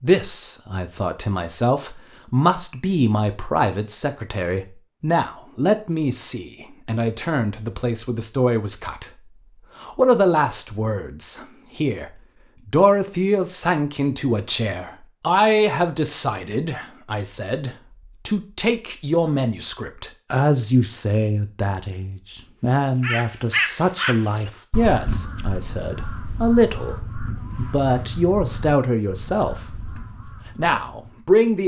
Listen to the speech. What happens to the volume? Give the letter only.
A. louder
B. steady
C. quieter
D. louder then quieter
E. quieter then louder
B.